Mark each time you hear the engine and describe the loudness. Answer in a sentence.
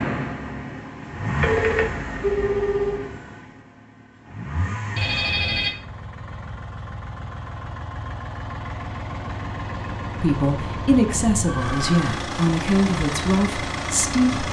The engine can be heard from 0.0 to 14.4 s, getting quieter then louder.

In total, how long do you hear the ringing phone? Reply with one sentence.
You can hear the ringing phone for 3 seconds altogether.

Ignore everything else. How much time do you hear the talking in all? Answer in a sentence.
The talking can be heard for 4 seconds in total.